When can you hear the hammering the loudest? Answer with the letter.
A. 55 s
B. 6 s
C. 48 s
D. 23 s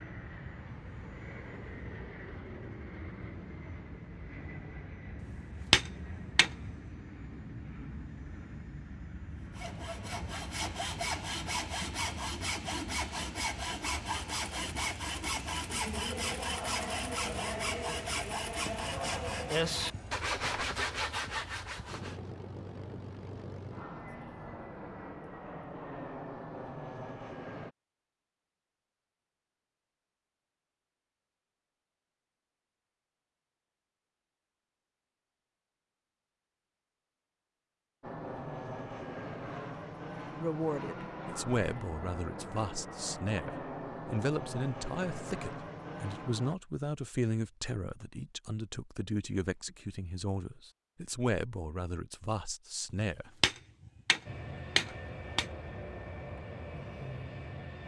B.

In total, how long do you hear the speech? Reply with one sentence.
You can hear the speech for 13 seconds altogether.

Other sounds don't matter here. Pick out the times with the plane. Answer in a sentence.
You can hear the plane from 0.0 to 27.8 s, from 38.0 to 46.5 s and from 54.2 to 57.8 s.